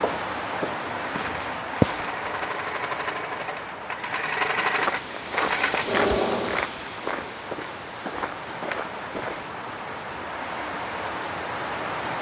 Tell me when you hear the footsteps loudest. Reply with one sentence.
The volume of the footsteps peaks at 2 seconds.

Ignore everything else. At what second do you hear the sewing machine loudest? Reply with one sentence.
The volume of the sewing machine peaks at 6 seconds.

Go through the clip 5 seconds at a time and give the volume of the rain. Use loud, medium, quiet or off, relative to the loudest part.
loud, medium, loud.